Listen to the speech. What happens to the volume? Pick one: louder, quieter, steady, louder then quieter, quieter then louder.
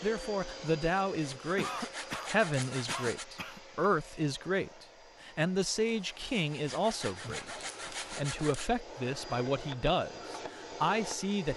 steady.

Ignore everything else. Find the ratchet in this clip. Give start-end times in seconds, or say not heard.
not heard.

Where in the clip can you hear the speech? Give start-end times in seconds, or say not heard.
0.0-11.5.